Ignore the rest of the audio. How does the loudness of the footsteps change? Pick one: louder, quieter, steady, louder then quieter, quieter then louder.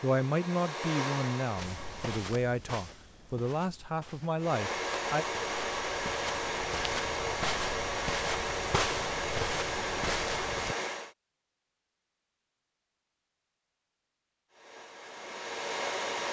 quieter then louder.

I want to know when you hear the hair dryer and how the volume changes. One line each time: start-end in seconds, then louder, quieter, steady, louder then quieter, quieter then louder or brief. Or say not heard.
0.0-2.2 brief
4.3-11.2 steady
14.5-16.2 brief.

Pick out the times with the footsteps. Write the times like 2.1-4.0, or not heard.
1.6-10.8.